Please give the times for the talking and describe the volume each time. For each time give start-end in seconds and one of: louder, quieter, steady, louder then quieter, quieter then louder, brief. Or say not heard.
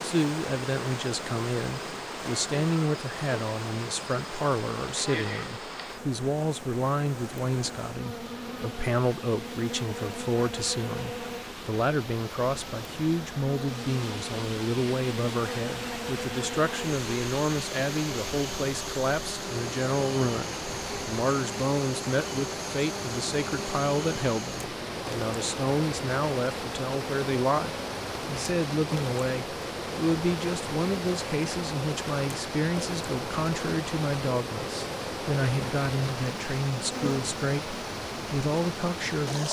0.0-39.4 steady.